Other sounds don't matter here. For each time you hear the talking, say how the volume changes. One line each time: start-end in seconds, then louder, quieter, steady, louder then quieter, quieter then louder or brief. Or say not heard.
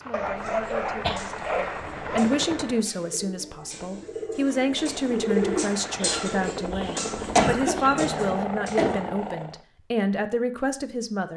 0.0-11.3 steady.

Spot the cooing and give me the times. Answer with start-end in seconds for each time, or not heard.
0.5-9.4.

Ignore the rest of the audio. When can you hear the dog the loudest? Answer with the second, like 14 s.
1 s.